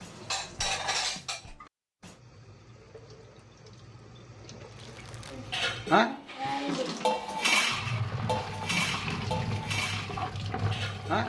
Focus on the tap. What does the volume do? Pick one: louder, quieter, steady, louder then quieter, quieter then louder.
louder.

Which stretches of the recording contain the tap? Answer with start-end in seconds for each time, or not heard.
2.0-11.2.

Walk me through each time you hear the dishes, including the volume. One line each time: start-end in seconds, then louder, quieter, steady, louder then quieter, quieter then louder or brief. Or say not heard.
0.0-2.1 brief
5.3-11.2 quieter.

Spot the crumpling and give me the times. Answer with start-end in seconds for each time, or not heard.
4.8-5.5.